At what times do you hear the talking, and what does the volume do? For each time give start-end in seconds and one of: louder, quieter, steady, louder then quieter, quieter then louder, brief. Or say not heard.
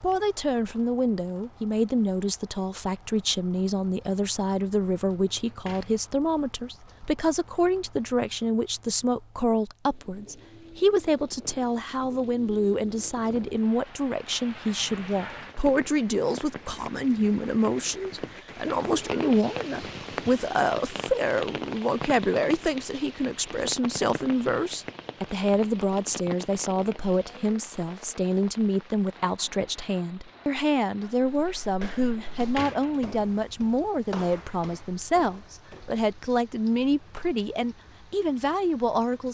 0.0-39.2 steady.